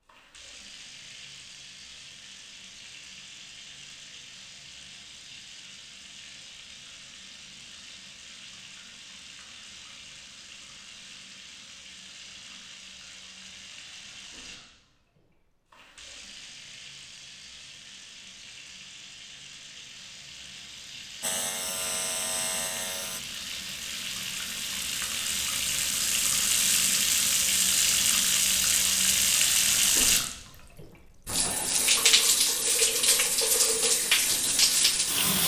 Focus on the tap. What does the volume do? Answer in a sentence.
The loudness of the tap goes up.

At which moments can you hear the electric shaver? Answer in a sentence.
You can hear the electric shaver from 21.2 to 23.2 s.